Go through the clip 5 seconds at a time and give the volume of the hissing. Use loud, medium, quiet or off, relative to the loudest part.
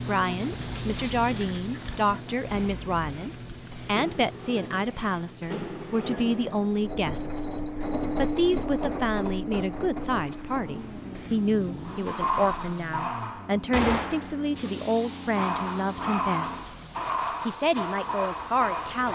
medium, quiet, loud, loud.